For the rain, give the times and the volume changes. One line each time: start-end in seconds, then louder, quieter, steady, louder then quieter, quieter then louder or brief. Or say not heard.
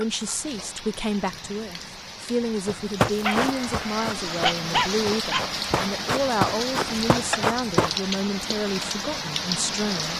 0.0-10.1 louder.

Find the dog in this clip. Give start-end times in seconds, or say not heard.
3.0-5.4.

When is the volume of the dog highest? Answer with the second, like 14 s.
5 s.